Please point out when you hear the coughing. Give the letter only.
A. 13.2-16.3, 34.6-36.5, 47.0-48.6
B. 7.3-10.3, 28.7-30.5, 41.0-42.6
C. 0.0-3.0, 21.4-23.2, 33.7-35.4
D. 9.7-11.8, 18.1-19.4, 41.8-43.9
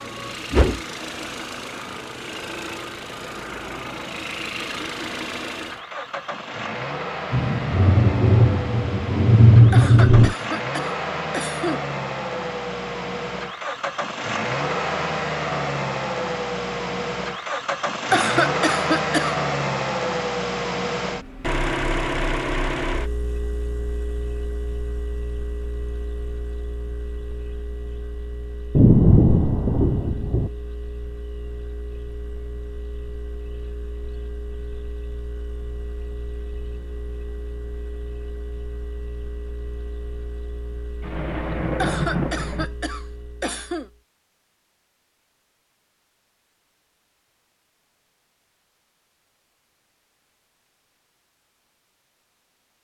D.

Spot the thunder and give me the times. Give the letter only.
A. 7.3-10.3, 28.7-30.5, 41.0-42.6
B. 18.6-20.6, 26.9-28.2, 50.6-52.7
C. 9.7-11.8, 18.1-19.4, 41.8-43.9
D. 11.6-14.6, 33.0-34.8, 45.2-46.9
A.